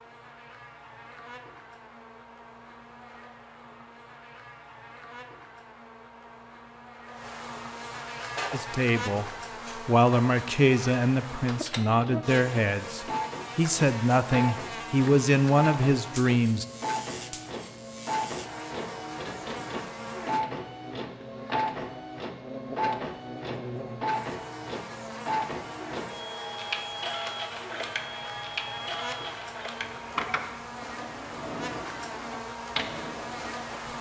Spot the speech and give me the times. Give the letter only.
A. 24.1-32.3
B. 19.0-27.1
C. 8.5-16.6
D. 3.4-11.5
C.